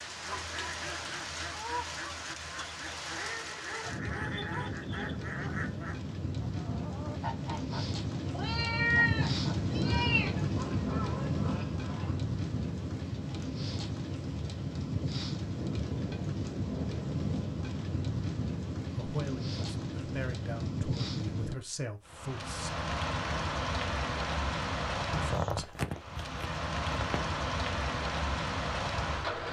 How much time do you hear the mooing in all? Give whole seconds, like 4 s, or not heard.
not heard.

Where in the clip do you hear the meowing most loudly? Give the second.
9 s.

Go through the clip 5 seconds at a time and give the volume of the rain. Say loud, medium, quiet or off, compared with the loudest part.
medium, loud, loud, loud, loud, loud.